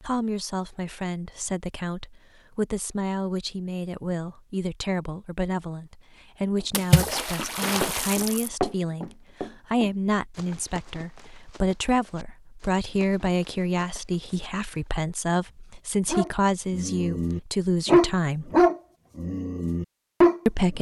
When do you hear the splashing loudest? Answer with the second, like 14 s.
7 s.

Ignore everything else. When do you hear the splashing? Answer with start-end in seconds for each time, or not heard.
6.7-8.5.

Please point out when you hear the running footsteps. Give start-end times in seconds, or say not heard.
6.6-14.9.